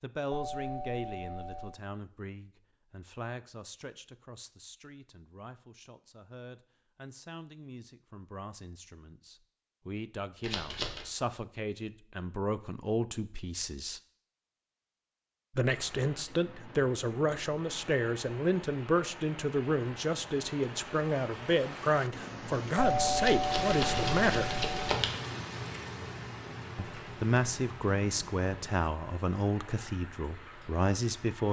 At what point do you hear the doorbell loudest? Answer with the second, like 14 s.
23 s.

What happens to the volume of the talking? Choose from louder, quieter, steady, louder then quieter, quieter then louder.
louder.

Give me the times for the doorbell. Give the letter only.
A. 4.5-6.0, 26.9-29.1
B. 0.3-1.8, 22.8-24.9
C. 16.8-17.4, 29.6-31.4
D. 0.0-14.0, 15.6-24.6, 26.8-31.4
B.